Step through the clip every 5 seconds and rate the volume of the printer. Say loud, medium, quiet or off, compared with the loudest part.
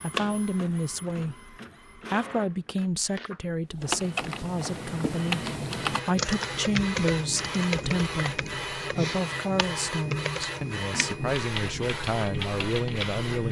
medium, loud, loud.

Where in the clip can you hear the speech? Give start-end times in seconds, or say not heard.
0.0-13.4.